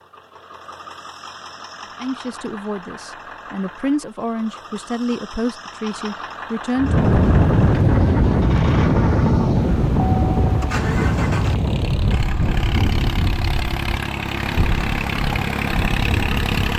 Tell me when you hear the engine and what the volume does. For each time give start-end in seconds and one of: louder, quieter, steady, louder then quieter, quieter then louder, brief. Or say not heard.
0.0-16.7 louder.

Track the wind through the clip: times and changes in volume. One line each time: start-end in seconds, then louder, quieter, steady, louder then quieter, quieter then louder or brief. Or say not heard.
6.8-16.5 quieter.